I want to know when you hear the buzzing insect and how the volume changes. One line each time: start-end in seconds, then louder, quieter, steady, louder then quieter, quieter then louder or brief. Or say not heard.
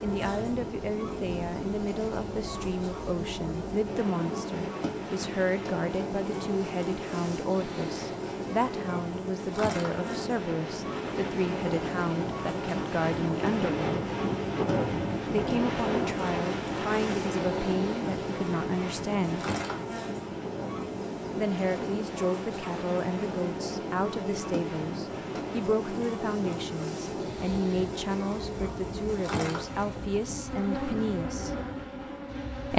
0.0-32.7 steady.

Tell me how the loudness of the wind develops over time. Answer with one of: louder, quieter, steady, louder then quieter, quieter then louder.
louder then quieter.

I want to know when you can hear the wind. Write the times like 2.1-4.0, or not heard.
0.0-32.7.